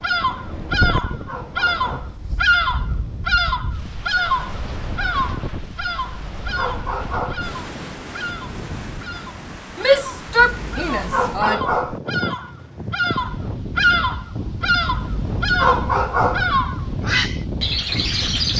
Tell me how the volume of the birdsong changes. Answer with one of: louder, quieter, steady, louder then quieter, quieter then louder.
quieter then louder.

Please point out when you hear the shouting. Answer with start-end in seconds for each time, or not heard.
9.8-11.6.